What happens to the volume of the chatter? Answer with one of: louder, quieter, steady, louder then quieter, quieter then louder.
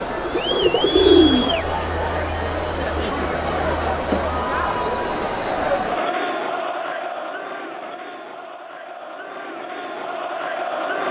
quieter.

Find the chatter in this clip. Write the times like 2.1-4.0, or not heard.
0.0-11.0.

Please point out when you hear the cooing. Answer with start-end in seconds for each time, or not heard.
0.1-1.6.